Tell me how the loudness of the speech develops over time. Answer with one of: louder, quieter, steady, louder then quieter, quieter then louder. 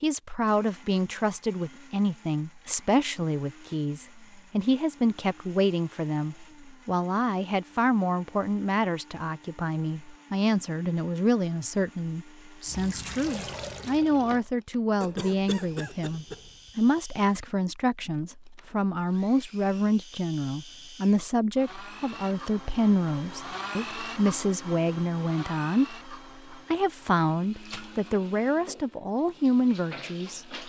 steady.